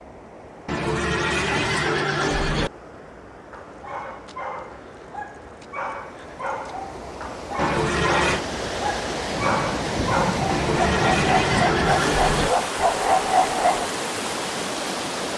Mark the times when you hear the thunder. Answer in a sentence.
The thunder can be heard from 9.3 to 12.1 s.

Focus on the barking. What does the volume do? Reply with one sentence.
The volume of the barking goes up.